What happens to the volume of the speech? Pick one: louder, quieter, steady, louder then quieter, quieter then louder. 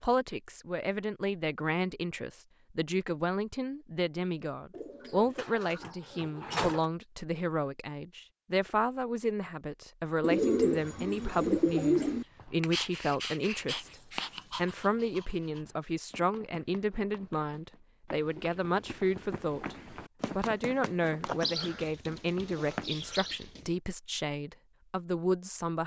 steady.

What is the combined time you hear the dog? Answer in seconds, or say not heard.
3 s.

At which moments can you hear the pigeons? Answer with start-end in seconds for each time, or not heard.
4.7-6.8, 10.2-12.2, 21.2-23.7.